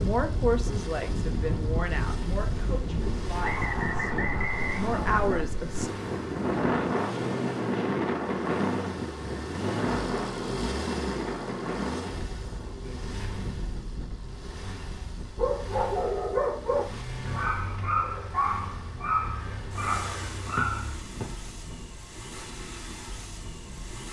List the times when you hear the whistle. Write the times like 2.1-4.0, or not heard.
3.4-5.4, 20.6-21.2.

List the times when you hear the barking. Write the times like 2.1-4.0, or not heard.
15.3-21.0.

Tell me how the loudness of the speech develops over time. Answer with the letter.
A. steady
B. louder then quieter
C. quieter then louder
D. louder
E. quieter
C.